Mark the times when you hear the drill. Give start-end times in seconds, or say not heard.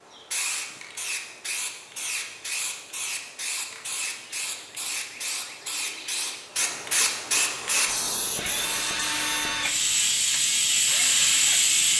7.5-11.8.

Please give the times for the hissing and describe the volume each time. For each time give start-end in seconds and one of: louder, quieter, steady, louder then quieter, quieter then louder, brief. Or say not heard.
0.0-11.9 louder.